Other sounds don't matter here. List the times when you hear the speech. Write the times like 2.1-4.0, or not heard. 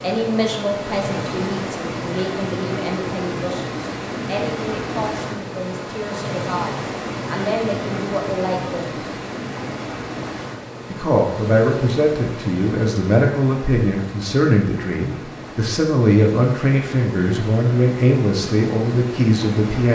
0.0-9.1, 10.9-19.8.